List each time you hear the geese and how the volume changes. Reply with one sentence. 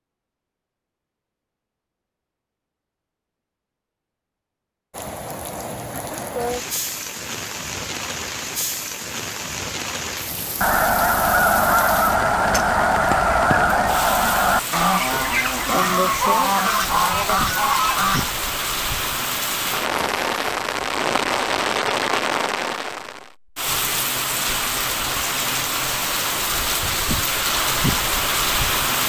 The geese can be heard from 10.6 to 18.2 s, at a steady volume.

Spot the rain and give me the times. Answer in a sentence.
You can hear the rain from 4.9 to 29.0 s.